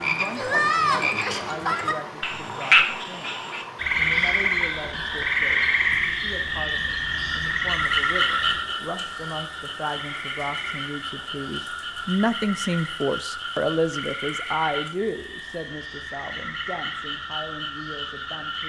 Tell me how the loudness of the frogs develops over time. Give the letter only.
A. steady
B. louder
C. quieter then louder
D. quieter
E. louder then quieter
D.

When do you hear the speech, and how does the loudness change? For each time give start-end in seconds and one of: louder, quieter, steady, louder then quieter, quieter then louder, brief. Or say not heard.
0.0-18.6 louder then quieter.